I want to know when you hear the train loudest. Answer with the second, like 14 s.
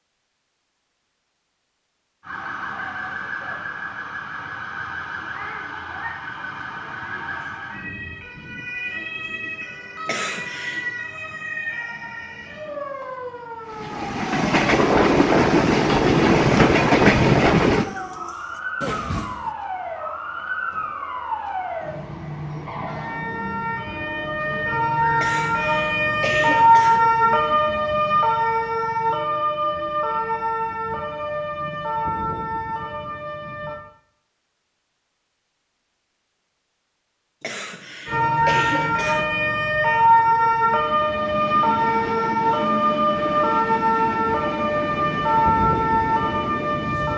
17 s.